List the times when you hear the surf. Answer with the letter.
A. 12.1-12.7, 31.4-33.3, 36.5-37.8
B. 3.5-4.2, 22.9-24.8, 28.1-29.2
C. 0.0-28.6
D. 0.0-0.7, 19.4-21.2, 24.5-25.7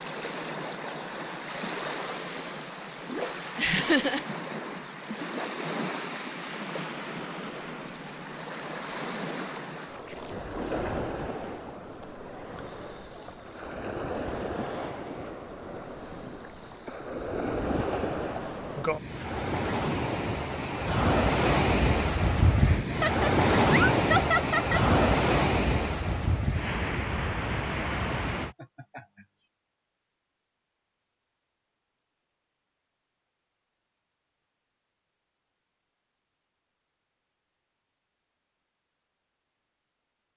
C.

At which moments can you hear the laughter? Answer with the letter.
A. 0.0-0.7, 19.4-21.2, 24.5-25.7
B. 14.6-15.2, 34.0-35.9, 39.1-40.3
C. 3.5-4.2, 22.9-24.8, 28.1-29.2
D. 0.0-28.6
C.